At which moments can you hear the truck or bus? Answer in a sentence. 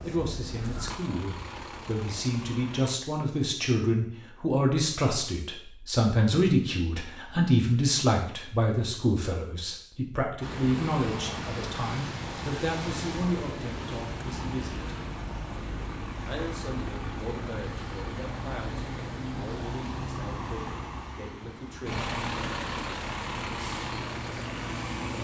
You can hear the truck or bus from 0.0 to 3.0 s and from 10.4 to 25.2 s.